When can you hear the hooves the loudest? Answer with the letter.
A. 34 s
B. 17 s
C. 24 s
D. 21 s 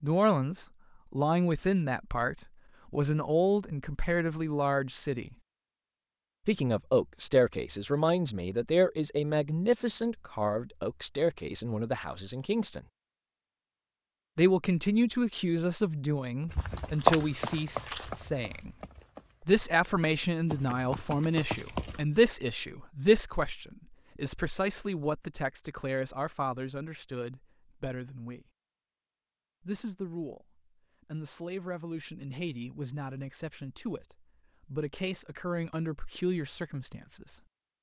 B.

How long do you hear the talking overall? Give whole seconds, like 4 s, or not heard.
33 s.